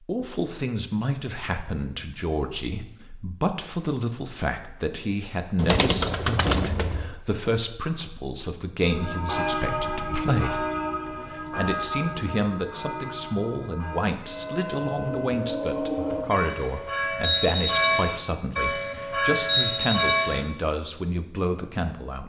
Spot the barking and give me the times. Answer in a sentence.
You can't hear the barking here.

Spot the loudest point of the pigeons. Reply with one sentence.
The volume of the pigeons peaks at 6 seconds.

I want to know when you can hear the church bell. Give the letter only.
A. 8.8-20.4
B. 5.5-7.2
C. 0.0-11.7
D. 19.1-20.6
A.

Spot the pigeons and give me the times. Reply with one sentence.
The pigeons can be heard from 5.5 to 7.2 s.